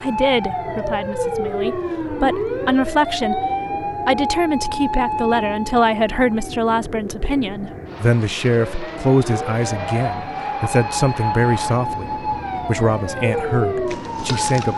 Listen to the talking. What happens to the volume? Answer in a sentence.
The loudness of the talking stays about the same.